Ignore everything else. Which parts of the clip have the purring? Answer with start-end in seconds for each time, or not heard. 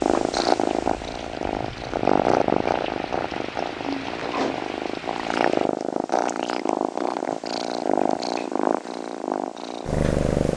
0.0-10.5.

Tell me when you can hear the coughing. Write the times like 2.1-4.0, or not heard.
not heard.